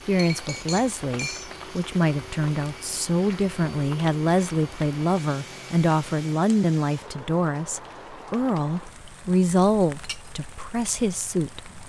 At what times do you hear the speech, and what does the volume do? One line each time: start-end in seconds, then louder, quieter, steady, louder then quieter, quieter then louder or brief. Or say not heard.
0.1-11.6 steady.